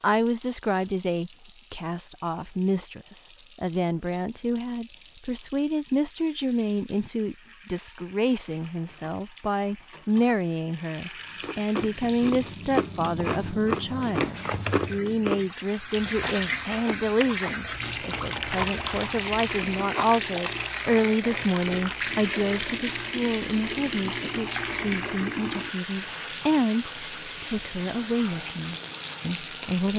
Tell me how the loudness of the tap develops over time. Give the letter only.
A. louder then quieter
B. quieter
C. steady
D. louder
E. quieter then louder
D.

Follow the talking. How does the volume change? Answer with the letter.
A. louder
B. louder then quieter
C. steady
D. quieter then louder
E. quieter
C.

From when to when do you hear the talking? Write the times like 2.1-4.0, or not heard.
0.0-29.9.